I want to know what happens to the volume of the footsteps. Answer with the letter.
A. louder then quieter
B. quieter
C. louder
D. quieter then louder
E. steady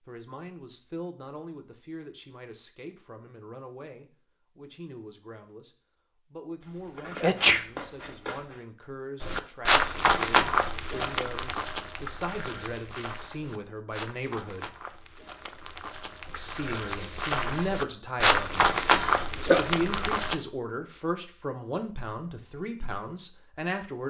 D.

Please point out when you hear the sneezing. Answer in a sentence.
You can hear the sneezing from 7.2 to 7.7 s and from 18.9 to 19.6 s.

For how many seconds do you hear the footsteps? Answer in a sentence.
You can hear the footsteps for 11 seconds altogether.